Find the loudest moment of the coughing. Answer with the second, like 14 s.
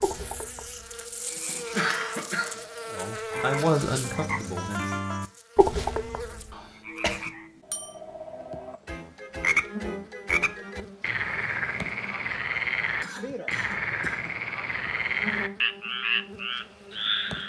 2 s.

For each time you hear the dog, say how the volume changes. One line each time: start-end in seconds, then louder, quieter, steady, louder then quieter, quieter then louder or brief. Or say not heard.
not heard.